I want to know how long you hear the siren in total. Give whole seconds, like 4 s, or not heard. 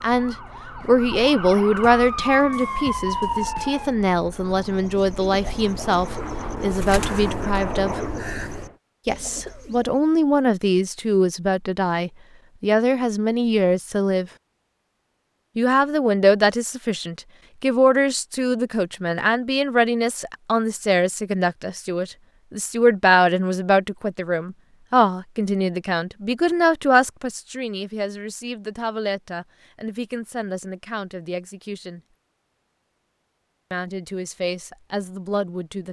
4 s.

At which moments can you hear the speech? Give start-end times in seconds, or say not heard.
0.0-8.0, 9.1-14.3, 15.6-32.0, 33.7-35.8.